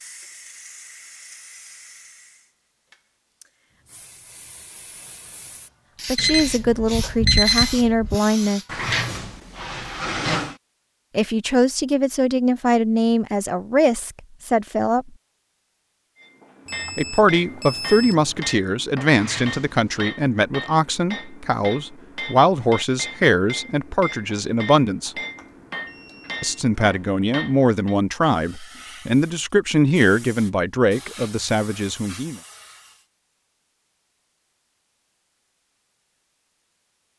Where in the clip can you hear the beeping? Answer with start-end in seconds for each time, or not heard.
6.2-8.2, 16.6-18.5, 25.1-26.6.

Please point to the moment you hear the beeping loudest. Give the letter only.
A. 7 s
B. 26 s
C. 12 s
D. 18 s
A.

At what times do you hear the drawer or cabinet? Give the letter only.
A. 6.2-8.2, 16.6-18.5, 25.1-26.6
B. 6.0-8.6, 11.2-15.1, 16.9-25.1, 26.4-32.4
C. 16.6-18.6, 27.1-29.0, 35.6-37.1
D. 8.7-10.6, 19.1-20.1
D.